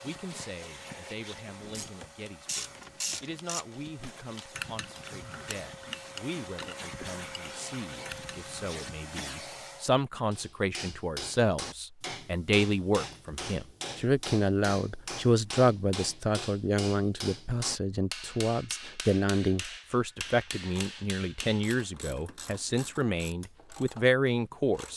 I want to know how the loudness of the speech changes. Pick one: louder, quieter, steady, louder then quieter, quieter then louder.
louder.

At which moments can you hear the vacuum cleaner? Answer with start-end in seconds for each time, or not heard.
0.0-9.9.